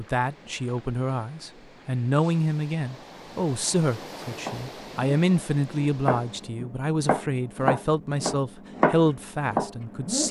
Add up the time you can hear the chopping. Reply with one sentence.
The chopping can be heard for 6 seconds in total.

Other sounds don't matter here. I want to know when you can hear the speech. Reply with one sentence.
You can hear the speech from 0.0 to 10.2 s.